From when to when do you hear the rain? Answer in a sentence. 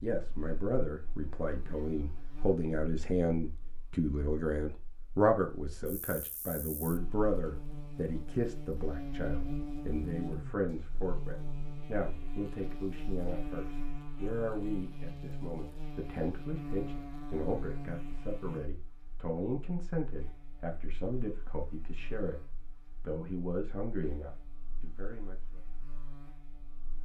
The rain can't be heard in this clip.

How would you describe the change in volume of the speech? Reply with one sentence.
The volume of the speech goes down.